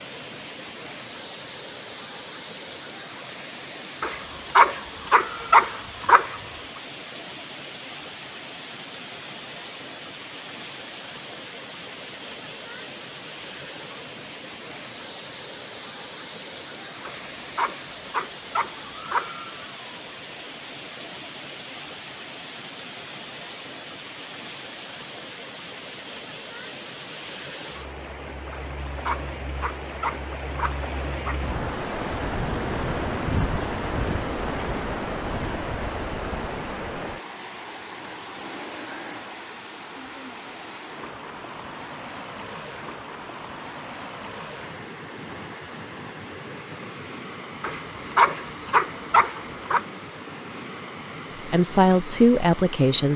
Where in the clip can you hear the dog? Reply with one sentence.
You can hear the dog from 4.0 to 6.4 s, from 17.1 to 19.4 s, from 28.5 to 31.4 s and from 47.6 to 49.8 s.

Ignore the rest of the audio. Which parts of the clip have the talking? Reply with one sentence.
The talking can be heard from 51.4 to 53.1 s.